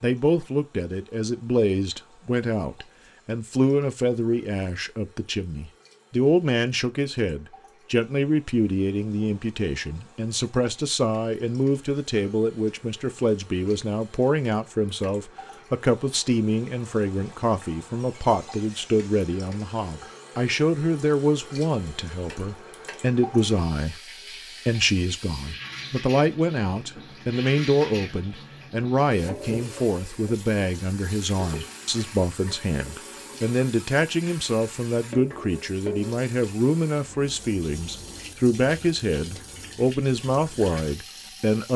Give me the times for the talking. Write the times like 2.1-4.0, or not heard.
0.0-41.7.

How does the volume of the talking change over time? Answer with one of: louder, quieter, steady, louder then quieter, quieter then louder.
steady.